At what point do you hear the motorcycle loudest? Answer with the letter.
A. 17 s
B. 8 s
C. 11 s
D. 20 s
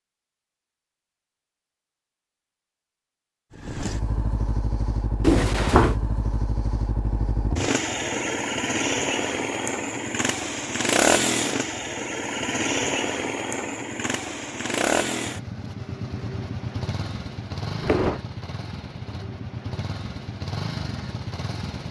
C.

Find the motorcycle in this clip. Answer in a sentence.
The motorcycle can be heard from 3.5 to 21.8 s.